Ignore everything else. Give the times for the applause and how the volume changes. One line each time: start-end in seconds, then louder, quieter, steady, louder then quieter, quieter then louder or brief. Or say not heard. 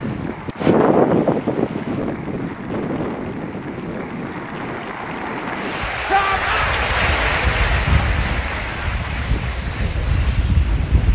0.0-11.1 louder then quieter.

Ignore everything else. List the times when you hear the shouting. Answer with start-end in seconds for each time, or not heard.
6.0-6.8.